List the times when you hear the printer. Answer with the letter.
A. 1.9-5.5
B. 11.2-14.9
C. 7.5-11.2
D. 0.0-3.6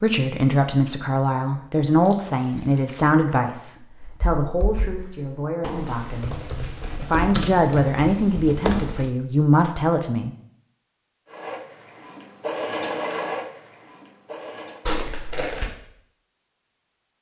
B.